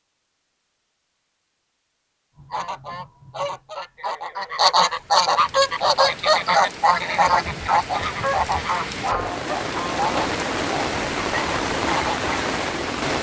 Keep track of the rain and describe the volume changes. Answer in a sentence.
The volume of the rain goes up.